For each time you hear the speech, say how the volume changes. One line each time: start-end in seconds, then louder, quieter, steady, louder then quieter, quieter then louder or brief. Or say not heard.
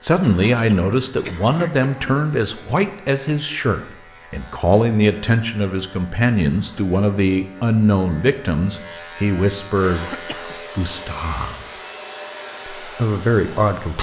0.0-10.1 steady
10.8-11.7 brief
12.8-13.9 brief.